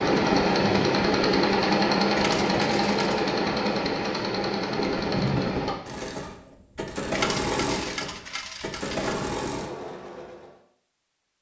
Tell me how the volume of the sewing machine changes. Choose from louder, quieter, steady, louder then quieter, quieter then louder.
quieter.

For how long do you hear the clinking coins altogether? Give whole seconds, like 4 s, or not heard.
3 s.